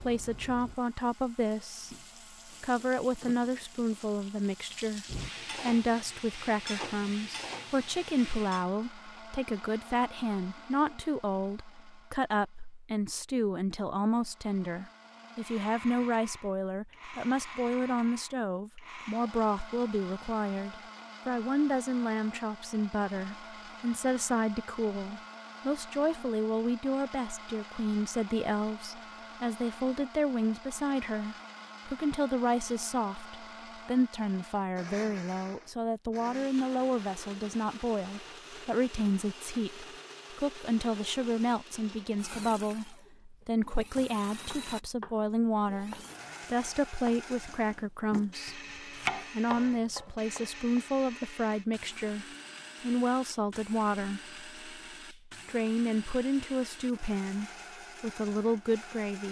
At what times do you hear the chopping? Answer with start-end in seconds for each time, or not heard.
43.4-50.9.